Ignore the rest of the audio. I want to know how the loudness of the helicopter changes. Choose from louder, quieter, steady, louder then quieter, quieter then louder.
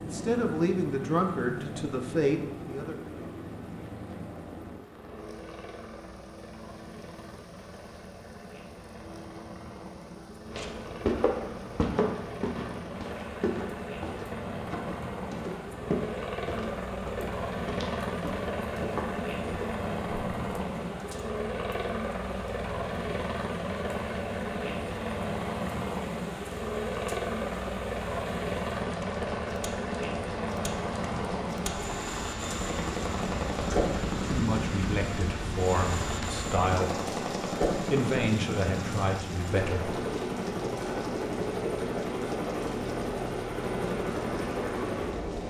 louder.